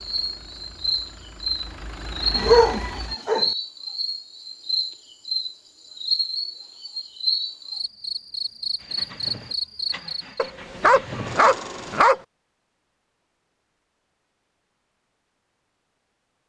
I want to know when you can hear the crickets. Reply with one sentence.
The crickets can be heard from 0.0 to 10.5 s.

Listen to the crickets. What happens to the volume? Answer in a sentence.
The volume of the crickets stays about the same.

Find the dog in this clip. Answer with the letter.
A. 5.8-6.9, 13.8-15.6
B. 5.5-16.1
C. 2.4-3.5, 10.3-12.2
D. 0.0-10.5
C.